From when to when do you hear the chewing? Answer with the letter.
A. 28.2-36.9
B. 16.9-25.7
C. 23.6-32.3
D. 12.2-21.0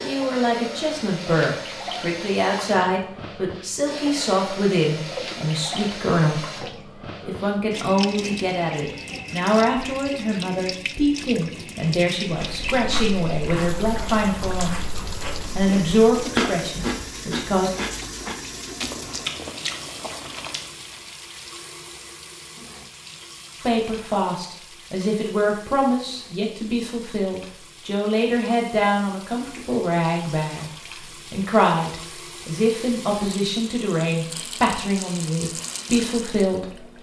D.